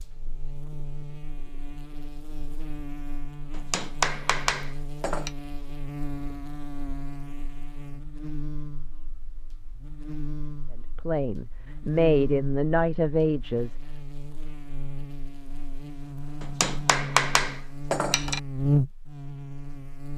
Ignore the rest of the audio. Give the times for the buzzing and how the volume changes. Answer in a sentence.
The buzzing can be heard from 0.0 to 20.1 s, getting louder.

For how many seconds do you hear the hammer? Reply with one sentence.
The hammer can be heard for 4 seconds in total.